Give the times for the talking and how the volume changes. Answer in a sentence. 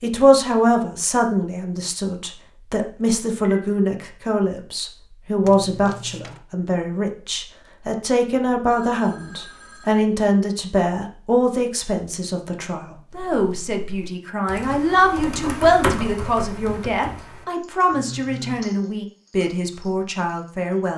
The talking can be heard from 0.0 to 20.9 s, at a steady volume.